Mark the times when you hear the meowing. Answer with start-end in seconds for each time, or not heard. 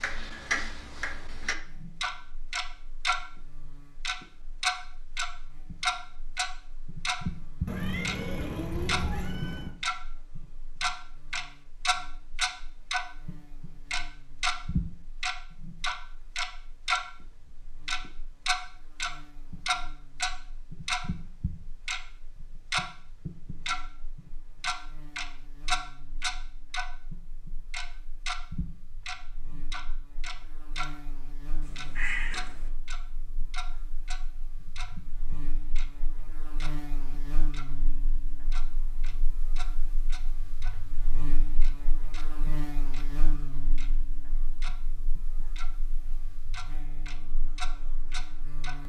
7.7-9.8, 31.6-32.7.